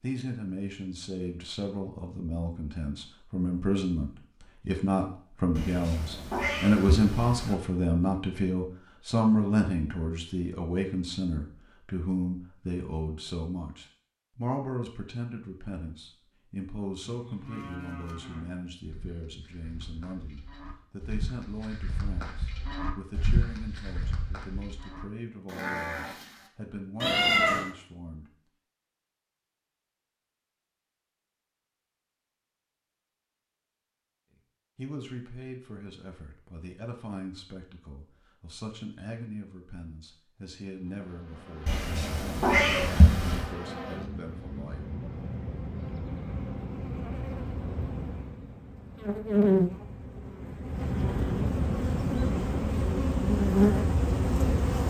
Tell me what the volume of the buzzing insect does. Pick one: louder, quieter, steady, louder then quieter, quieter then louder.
louder.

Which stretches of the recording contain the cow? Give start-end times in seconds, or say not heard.
17.1-26.5.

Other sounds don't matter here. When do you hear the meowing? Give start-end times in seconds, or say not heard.
5.5-7.5, 27.0-27.7, 41.6-43.5.